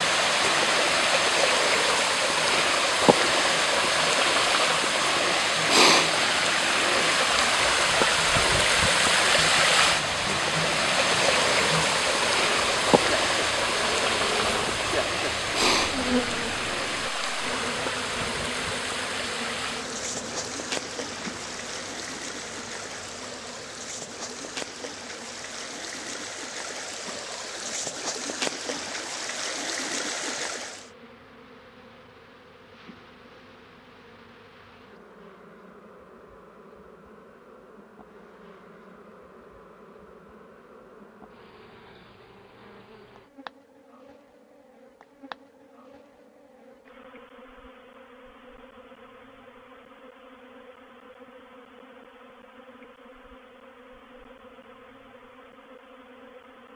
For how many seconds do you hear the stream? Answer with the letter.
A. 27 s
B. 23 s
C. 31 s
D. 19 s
C.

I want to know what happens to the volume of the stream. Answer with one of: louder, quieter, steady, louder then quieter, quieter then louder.
quieter.